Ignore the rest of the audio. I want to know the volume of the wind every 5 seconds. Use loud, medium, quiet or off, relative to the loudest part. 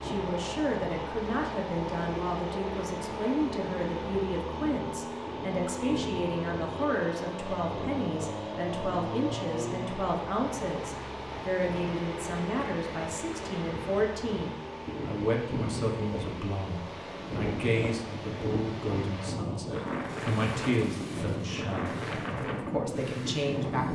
medium, medium, medium, loud, loud.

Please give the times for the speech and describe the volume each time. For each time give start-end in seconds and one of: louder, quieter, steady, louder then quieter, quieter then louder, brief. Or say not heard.
0.0-23.9 steady.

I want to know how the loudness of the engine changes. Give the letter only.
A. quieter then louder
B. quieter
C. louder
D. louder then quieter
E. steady
B.